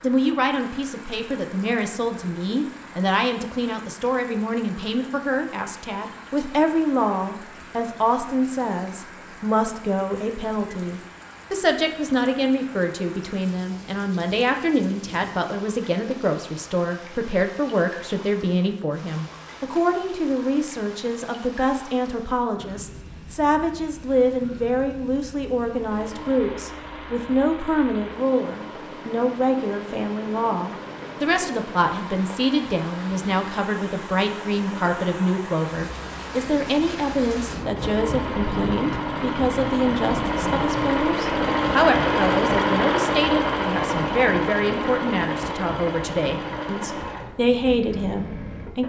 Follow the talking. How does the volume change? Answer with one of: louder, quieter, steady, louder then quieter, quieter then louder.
steady.